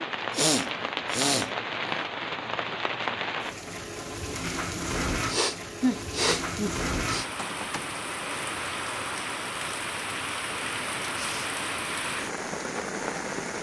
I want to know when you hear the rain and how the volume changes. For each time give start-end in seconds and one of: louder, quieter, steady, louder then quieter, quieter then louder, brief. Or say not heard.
0.0-13.5 steady.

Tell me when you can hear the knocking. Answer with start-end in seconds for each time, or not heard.
7.3-8.0.